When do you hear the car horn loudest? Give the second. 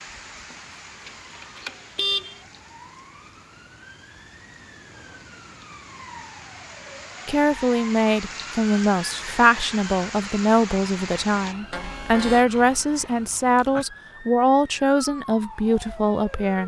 2 s.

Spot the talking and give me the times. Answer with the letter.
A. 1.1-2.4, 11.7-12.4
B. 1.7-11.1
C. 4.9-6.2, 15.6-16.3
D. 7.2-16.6
D.